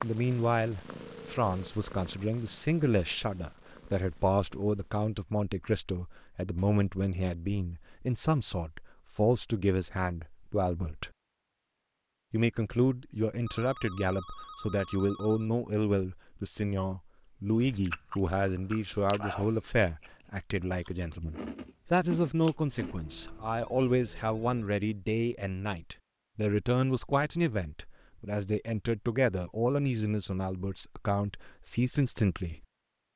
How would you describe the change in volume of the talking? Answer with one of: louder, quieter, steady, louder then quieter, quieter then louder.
steady.